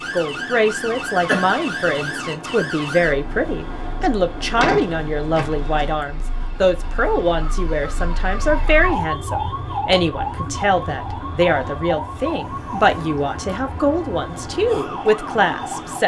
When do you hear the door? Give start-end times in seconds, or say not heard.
4.5-5.8.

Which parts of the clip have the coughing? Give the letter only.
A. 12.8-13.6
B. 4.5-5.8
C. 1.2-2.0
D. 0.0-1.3
C.